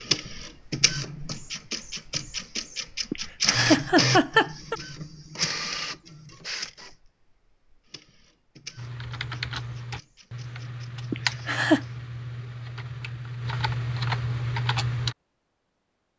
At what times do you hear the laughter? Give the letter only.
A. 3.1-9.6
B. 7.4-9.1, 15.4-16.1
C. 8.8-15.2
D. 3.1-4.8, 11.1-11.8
D.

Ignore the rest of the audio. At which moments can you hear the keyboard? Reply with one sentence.
The keyboard can be heard from 8.8 to 15.2 s.